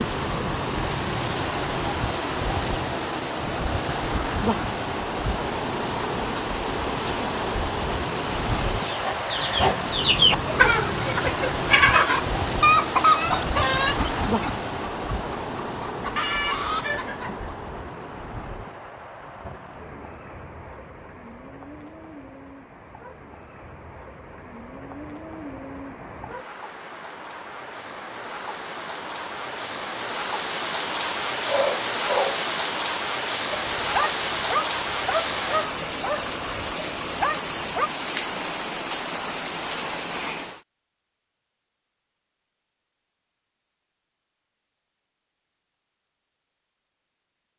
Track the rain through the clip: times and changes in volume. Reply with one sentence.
You can hear the rain from 0.0 to 40.6 s, getting quieter then louder.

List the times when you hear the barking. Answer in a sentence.
The barking can be heard from 31.4 to 32.5 s and from 33.5 to 37.9 s.